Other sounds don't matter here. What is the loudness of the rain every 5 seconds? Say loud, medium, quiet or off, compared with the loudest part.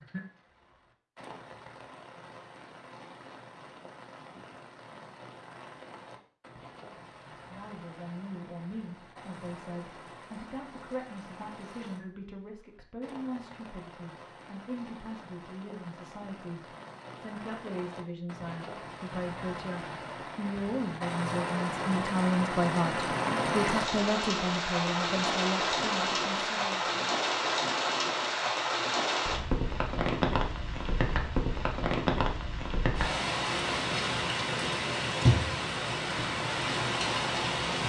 quiet, quiet, quiet, quiet, loud, loud, loud, loud.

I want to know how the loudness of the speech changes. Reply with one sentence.
The loudness of the speech goes up.